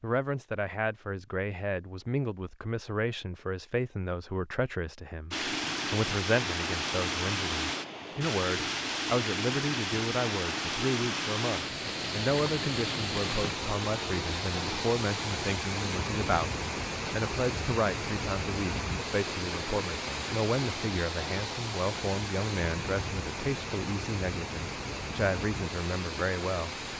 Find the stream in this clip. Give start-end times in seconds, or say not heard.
5.3-26.9.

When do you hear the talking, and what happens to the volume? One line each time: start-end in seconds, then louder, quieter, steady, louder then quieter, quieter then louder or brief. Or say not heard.
0.0-26.9 steady.